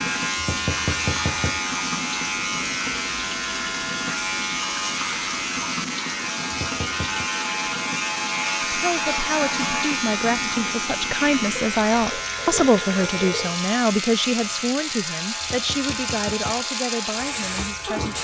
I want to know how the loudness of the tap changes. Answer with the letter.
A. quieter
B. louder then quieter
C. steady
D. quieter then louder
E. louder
C.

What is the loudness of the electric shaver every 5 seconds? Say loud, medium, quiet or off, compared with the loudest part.
loud, loud, loud, medium.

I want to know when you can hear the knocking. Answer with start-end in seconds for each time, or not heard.
0.3-1.6, 6.5-7.3, 15.4-16.6.